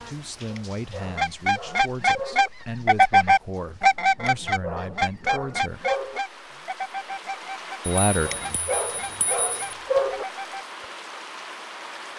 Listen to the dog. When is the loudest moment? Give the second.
10 s.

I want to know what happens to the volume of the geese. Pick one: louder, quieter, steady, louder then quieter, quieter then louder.
quieter.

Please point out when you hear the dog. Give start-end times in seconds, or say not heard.
0.5-2.5, 4.2-6.2, 8.2-10.2.